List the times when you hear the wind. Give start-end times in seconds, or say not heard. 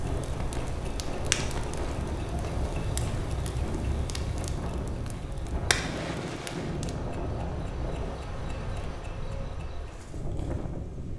0.0-11.1.